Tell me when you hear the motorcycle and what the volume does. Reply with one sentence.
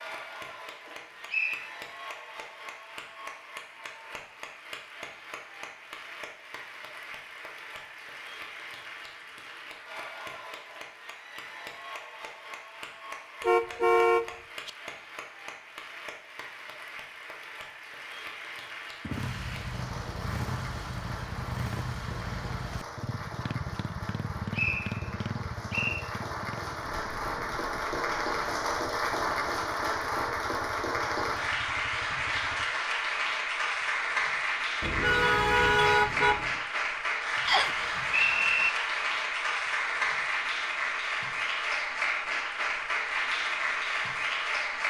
The motorcycle can be heard from 19.0 to 32.7 s, getting quieter.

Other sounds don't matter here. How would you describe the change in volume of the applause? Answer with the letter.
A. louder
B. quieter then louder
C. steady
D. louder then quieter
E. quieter
A.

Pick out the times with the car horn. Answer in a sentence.
You can hear the car horn from 13.4 to 14.7 s and from 34.8 to 36.5 s.